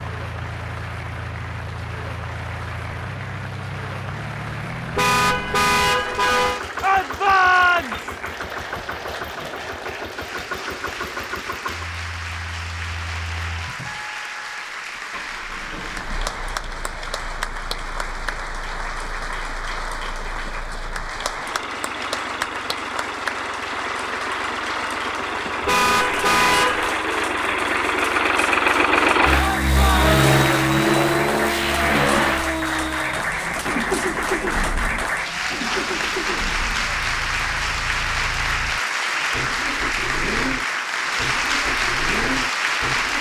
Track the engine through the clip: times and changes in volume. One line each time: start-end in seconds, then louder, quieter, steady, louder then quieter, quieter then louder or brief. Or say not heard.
0.0-43.1 louder then quieter.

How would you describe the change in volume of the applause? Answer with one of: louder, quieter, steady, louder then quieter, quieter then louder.
louder.